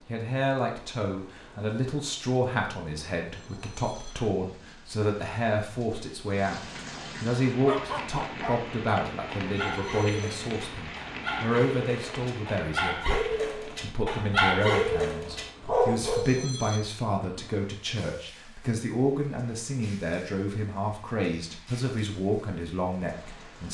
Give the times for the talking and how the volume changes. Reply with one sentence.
You can hear the talking from 0.1 to 23.7 s, at a steady volume.